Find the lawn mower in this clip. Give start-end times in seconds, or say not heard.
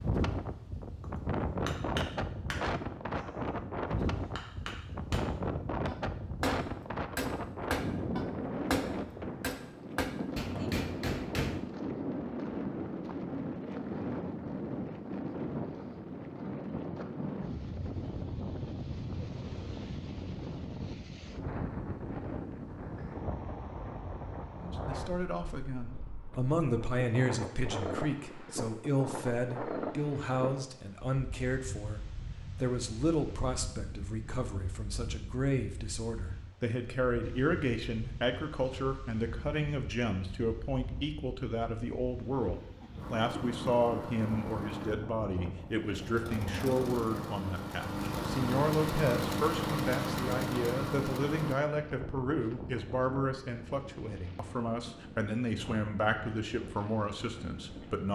43.0-51.6.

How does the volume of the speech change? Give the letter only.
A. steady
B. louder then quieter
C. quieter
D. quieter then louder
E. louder
A.